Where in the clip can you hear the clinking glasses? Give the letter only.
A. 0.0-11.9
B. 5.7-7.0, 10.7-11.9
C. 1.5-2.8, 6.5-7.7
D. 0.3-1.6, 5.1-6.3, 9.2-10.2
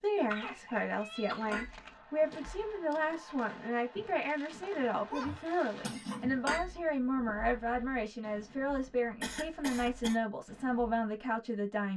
C.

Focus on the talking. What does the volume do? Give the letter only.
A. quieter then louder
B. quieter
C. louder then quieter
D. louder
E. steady
E.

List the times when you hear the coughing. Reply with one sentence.
You can hear the coughing from 0.3 to 1.6 s, from 5.1 to 6.3 s and from 9.2 to 10.2 s.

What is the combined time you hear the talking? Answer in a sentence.
The talking can be heard for 12 seconds in total.